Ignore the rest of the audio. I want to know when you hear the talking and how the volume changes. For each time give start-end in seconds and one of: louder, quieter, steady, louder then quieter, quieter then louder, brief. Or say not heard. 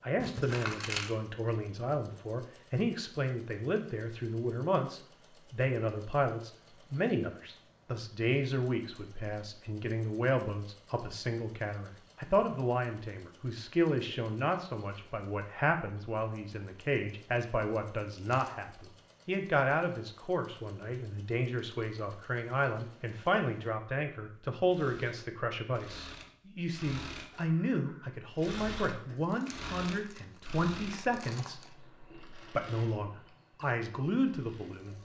0.0-35.0 steady.